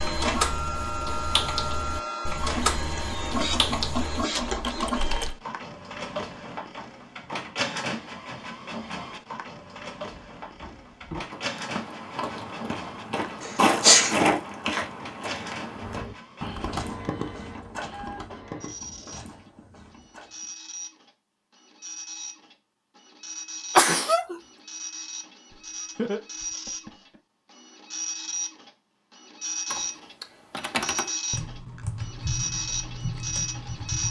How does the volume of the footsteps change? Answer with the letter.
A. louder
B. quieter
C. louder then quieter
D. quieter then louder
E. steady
C.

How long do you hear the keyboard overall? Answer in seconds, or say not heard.
13 s.